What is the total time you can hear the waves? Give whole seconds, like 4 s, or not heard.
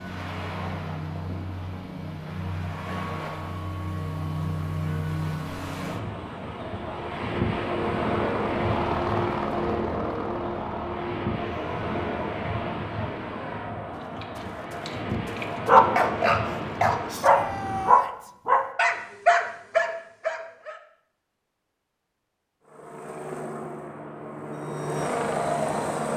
18 s.